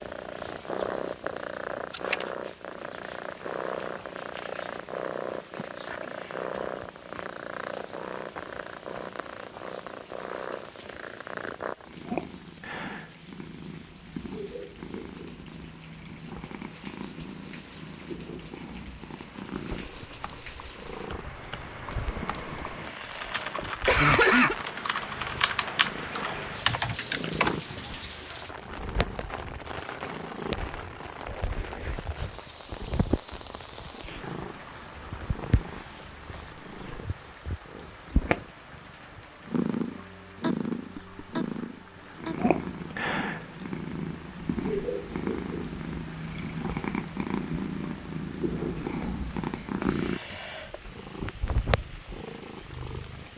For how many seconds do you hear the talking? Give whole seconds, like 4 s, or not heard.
not heard.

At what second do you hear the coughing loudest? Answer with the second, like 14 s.
24 s.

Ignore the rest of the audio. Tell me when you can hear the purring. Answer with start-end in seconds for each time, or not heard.
0.0-53.3.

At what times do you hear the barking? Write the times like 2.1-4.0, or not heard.
not heard.